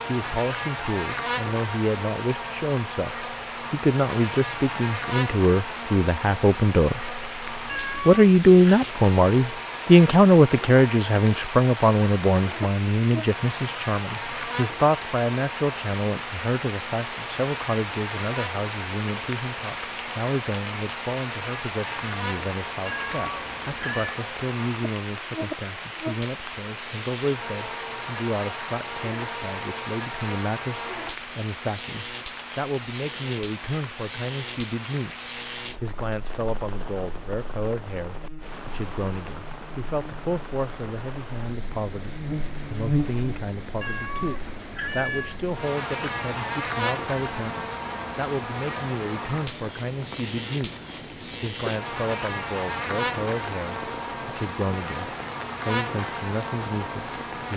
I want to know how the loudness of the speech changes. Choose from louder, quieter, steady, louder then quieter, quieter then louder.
quieter.